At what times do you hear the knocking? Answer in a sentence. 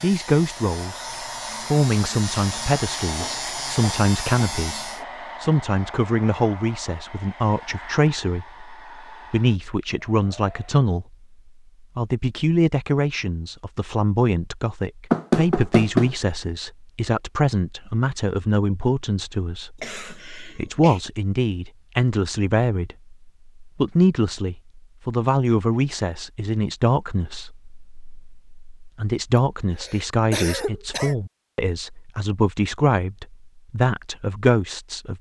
The knocking can be heard from 15.1 to 16.1 s.